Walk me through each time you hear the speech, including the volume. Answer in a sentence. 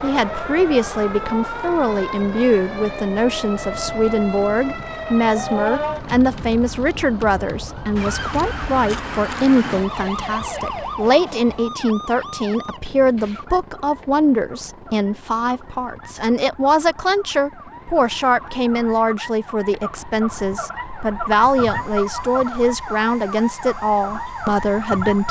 You can hear the speech from 0.0 to 25.2 s, at a steady volume.